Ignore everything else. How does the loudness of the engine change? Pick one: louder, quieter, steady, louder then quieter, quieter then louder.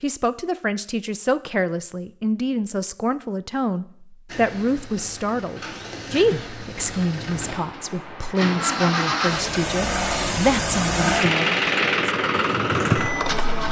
louder.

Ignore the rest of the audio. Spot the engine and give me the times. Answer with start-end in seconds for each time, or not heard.
4.2-13.6.